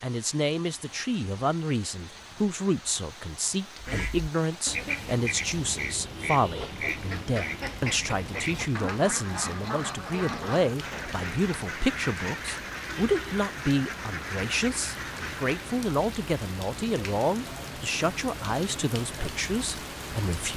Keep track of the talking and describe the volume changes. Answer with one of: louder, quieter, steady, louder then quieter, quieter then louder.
steady.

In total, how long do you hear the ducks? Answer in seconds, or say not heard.
12 s.